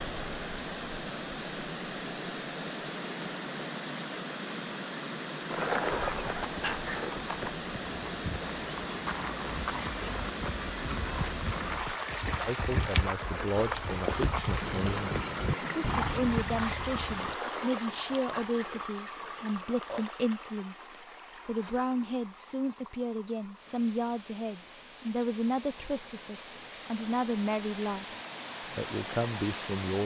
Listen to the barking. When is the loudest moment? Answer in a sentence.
The loudest moment of the barking is at 6 seconds.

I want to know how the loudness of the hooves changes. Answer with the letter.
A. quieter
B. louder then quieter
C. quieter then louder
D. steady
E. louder
E.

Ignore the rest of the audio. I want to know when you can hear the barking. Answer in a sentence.
You can hear the barking from 5.5 to 7.2 s and from 17.1 to 20.1 s.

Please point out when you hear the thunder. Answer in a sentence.
The thunder can be heard from 14.6 to 16.4 s.